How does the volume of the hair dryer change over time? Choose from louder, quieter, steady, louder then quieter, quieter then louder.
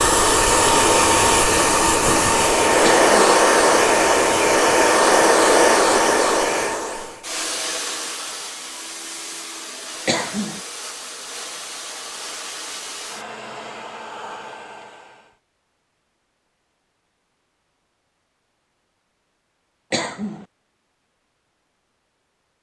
quieter.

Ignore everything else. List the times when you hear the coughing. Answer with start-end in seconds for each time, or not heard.
2.8-3.4, 10.1-10.6, 19.9-20.4.